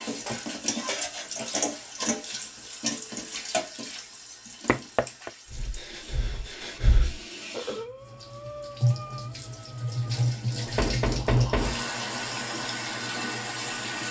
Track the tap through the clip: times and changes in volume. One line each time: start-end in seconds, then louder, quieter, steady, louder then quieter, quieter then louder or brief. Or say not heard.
0.0-14.0 quieter then louder.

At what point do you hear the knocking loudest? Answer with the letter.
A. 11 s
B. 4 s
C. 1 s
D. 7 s
A.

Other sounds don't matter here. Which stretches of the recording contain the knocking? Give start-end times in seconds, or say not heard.
4.7-5.3, 10.8-11.8.